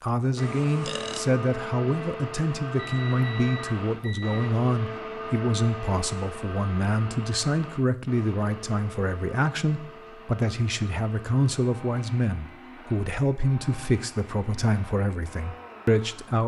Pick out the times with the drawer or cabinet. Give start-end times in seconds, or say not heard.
not heard.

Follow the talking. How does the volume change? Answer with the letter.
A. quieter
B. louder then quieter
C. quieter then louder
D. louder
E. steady
E.